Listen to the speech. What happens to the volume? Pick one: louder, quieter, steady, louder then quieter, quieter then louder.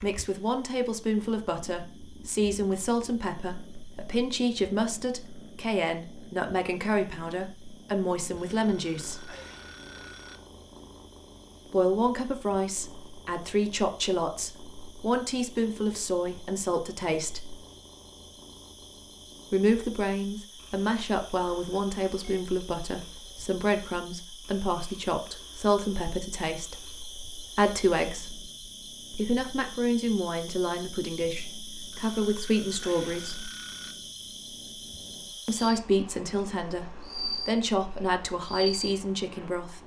steady.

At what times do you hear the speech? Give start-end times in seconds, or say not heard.
0.0-9.3, 11.7-17.6, 19.5-28.4, 29.1-33.5, 35.5-39.8.